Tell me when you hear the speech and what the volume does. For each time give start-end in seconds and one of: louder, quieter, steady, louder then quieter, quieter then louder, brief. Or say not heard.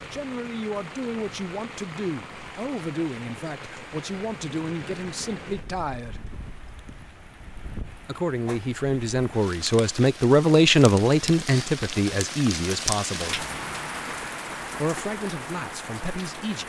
0.1-6.2 steady
8.0-13.4 louder then quieter
14.8-16.6 brief.